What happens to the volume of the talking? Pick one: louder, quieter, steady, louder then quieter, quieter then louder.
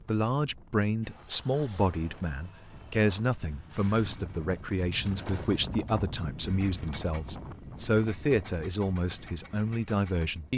steady.